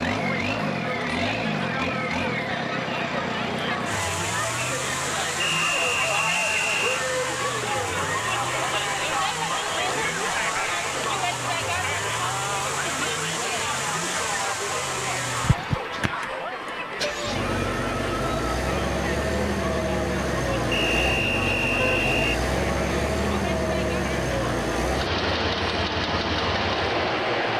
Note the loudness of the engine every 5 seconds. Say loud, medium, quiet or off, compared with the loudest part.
loud, medium, medium, loud, loud, loud.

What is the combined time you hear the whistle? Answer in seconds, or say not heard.
3 s.